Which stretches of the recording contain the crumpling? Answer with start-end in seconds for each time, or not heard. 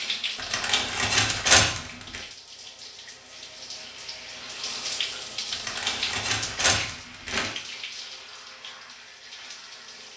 0.3-2.2, 5.5-7.5.